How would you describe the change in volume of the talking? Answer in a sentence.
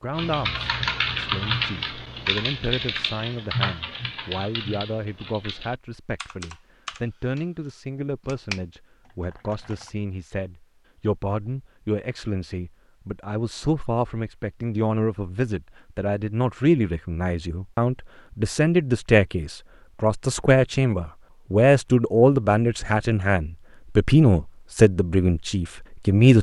The loudness of the talking goes up.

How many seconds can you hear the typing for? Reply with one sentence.
The typing can be heard for 10 seconds in total.